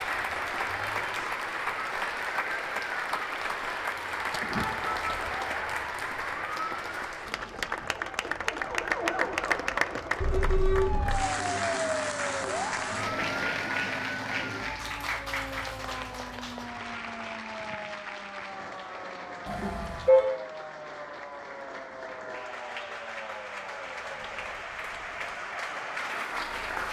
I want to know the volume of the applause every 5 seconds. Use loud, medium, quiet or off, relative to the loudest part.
loud, loud, loud, medium, medium, loud.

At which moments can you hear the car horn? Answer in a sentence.
You can hear the car horn from 4.4 to 5.3 s, from 10.2 to 11.2 s and from 19.4 to 20.2 s.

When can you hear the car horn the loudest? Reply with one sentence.
The loudest moment of the car horn is at 20 seconds.